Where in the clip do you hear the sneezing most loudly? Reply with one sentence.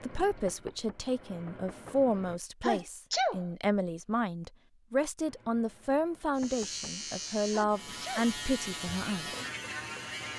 The loudest moment of the sneezing is at 3 seconds.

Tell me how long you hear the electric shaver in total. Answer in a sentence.
You can hear the electric shaver for 4 seconds altogether.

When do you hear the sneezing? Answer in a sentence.
You can hear the sneezing from 2.6 to 3.5 s and from 7.5 to 8.3 s.